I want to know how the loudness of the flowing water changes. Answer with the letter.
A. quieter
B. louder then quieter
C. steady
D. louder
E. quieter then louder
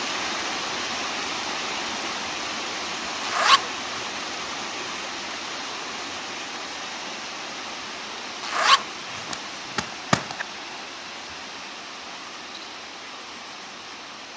A.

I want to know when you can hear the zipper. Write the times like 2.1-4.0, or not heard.
3.2-4.0, 8.4-10.4.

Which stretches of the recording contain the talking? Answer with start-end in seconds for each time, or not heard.
not heard.